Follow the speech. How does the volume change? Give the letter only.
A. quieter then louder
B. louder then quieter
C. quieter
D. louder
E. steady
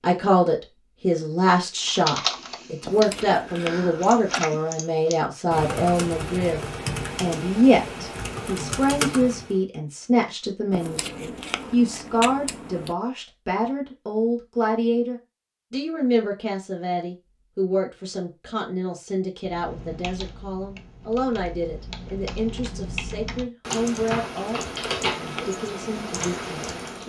C.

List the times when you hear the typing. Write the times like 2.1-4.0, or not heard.
1.8-9.6, 19.4-27.0.